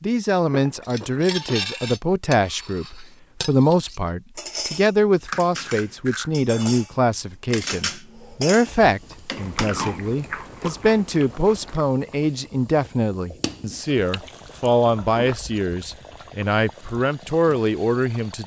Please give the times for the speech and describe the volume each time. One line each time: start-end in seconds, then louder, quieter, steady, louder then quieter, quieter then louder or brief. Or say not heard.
0.0-18.4 steady.